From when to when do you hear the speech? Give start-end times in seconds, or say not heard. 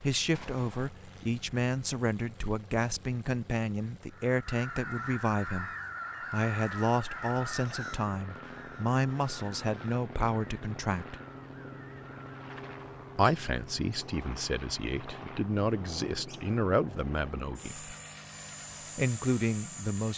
0.0-11.2, 13.2-17.9, 18.9-20.1.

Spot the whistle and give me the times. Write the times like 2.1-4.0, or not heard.
not heard.